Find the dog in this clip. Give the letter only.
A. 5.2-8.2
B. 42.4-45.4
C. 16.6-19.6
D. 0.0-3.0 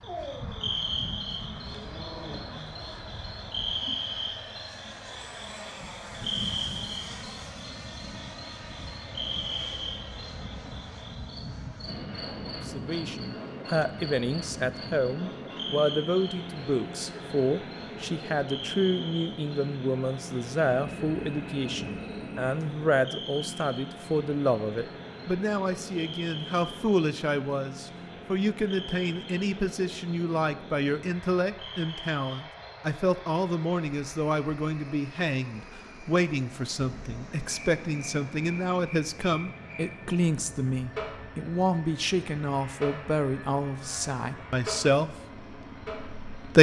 D.